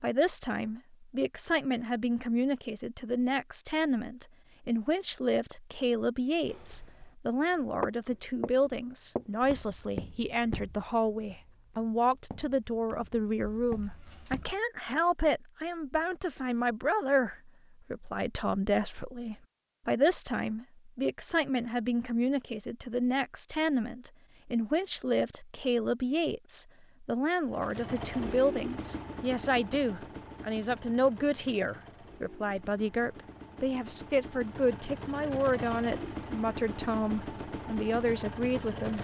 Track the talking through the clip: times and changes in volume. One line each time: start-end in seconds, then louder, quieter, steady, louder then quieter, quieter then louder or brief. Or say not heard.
0.0-38.9 steady.